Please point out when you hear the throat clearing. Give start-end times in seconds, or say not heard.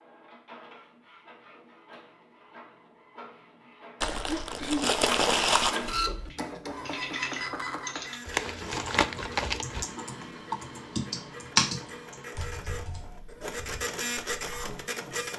4.2-4.9.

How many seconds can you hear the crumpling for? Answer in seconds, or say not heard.
3 s.